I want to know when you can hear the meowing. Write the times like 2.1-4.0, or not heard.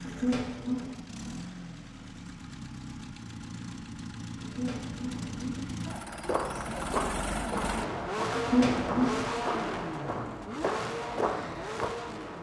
0.1-0.9, 4.4-5.7, 8.3-9.2.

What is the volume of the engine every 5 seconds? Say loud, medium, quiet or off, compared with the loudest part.
medium, loud, loud.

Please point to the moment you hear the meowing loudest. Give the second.
9 s.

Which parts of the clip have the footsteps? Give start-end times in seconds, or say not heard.
6.0-11.9.